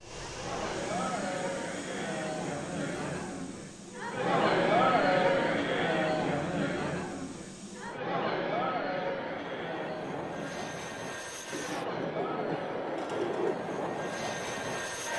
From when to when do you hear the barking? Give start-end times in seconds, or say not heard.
not heard.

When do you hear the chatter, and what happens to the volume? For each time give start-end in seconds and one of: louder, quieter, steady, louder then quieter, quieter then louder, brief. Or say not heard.
0.1-15.1 louder then quieter.